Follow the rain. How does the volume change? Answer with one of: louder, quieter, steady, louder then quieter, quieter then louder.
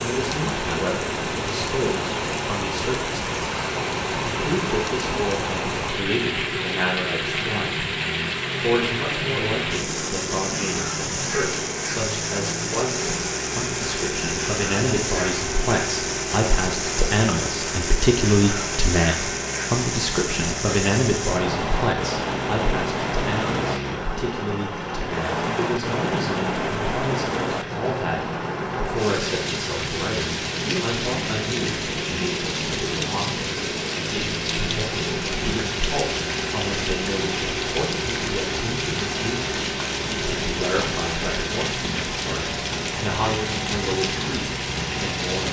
steady.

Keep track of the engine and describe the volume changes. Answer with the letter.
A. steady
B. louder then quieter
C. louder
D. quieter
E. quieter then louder
A.